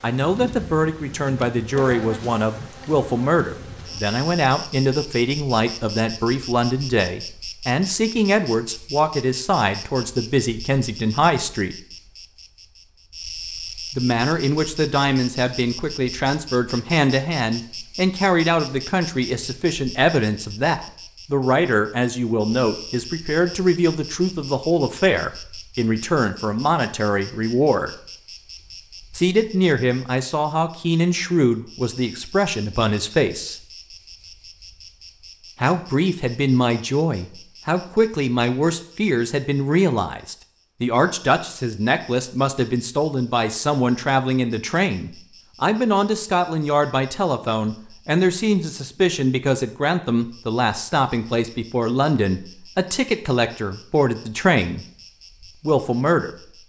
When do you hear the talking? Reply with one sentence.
The talking can be heard from 0.0 to 11.8 s, from 13.9 to 27.9 s, from 29.1 to 33.6 s, from 35.6 to 54.9 s and from 55.6 to 56.3 s.